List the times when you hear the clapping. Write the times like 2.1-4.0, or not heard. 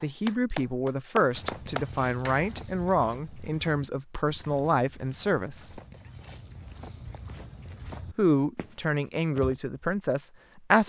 0.0-2.5.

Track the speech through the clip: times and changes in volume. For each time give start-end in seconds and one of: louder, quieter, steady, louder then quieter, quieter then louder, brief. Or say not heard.
0.0-5.8 steady
8.2-10.8 brief.